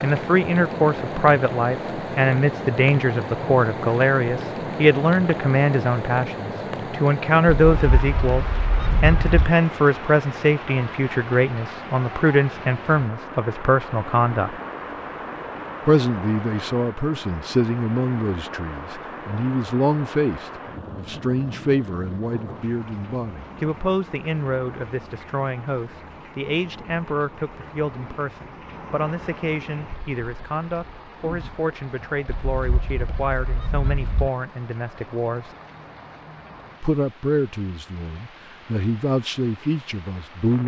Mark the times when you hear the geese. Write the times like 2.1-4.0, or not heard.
7.7-9.5, 32.2-34.3.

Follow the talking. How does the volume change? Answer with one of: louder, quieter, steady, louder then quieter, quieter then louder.
quieter.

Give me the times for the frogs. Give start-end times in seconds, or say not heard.
not heard.